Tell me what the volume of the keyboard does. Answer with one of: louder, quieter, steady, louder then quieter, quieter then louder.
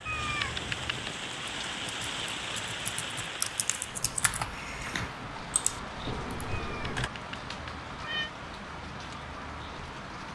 louder.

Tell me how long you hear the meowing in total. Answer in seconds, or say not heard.
3 s.